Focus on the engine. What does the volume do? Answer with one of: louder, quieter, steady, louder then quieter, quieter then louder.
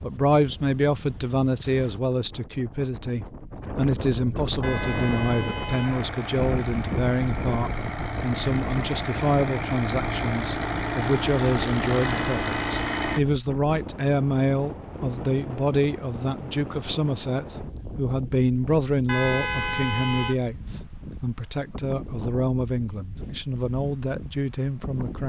louder.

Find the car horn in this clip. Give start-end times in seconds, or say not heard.
4.6-6.1, 12.0-13.2, 19.1-20.4.